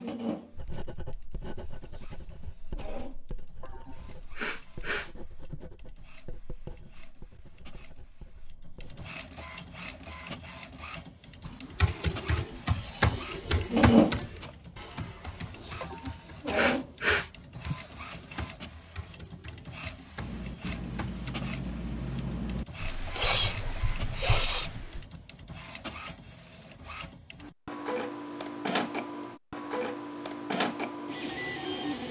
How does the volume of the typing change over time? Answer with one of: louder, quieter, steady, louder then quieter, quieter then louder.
quieter.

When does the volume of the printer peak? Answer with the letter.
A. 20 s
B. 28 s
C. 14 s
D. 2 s
C.